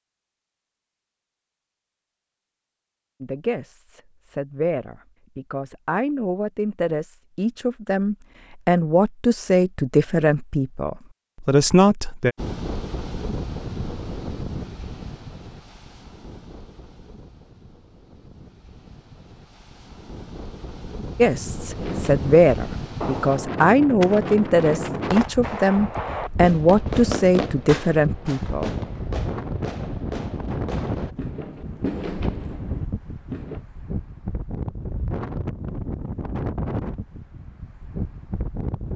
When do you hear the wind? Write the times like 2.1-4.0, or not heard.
12.3-38.9.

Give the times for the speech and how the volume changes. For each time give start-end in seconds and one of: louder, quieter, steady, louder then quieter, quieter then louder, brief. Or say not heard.
3.2-12.3 louder
21.1-28.7 steady.